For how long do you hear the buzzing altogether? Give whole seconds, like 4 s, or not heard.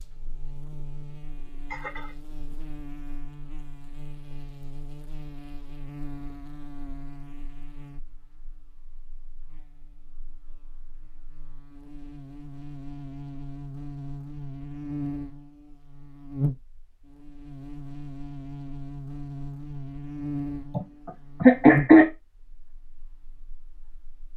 24 s.